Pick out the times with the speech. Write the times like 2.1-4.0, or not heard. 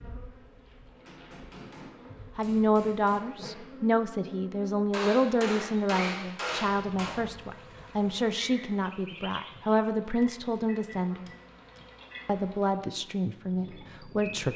2.4-11.3, 12.2-14.5.